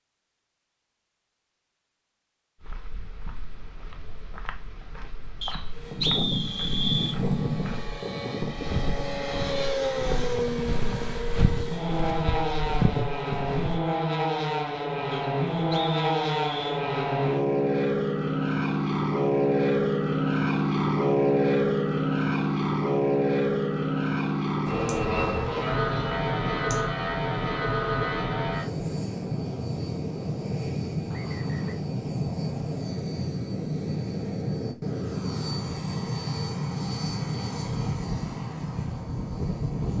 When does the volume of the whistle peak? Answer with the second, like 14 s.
6 s.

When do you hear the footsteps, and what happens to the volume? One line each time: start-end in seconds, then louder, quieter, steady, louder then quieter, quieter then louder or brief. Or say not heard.
2.6-13.8 louder.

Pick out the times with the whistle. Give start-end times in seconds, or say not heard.
5.4-7.2, 15.1-16.9, 31.1-31.8.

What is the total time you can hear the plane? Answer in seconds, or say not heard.
34 s.